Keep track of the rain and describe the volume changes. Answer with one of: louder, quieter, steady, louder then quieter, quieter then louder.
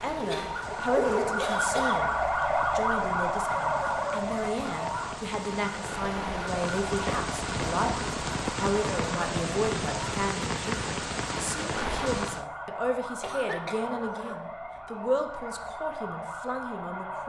louder.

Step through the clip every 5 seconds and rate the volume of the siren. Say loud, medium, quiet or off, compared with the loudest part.
loud, medium, medium, medium.